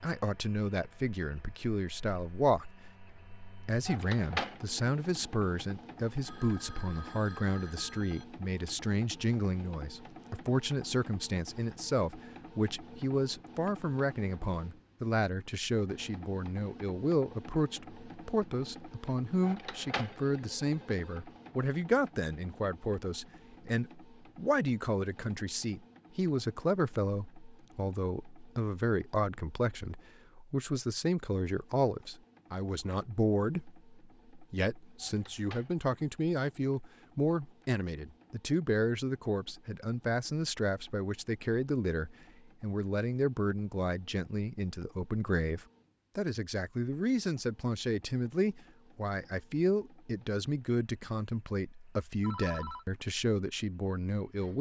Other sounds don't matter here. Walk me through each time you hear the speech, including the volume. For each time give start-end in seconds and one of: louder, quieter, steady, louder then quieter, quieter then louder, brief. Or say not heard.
0.0-2.7 brief
3.6-54.5 steady.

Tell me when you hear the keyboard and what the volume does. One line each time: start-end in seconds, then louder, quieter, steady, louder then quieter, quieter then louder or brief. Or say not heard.
not heard.